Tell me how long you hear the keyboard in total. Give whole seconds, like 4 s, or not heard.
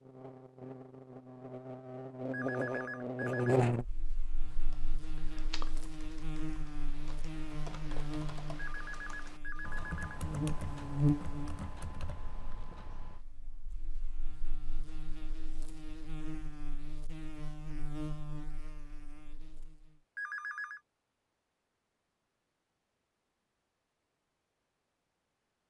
9 s.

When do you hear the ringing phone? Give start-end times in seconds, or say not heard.
2.3-3.5, 8.6-10.2, 20.1-20.8.